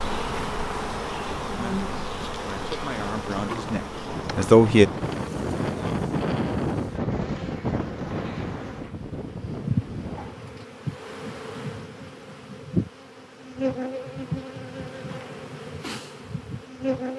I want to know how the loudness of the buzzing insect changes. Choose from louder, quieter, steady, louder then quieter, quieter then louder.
quieter then louder.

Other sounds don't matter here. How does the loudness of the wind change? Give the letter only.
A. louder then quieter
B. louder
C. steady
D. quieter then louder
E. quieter
A.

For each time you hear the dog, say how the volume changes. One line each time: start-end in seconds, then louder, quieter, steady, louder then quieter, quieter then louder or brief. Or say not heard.
not heard.